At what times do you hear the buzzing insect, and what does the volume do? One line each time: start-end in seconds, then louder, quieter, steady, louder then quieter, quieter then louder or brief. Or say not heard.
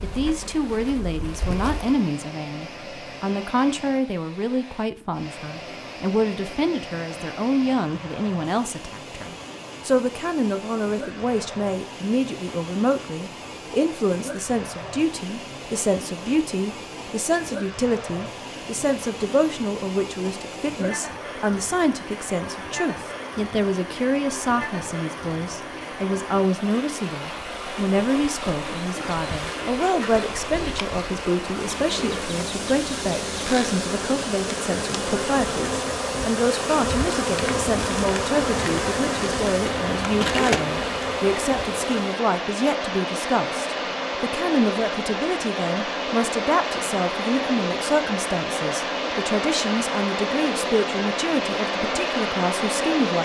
0.0-2.0 brief
27.3-42.2 louder.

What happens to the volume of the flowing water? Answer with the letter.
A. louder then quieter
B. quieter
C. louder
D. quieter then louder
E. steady
C.